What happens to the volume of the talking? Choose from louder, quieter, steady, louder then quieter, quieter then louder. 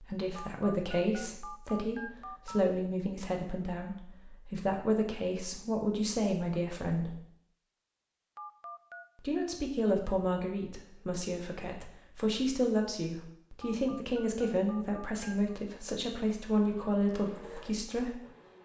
steady.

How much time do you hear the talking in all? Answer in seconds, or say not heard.
16 s.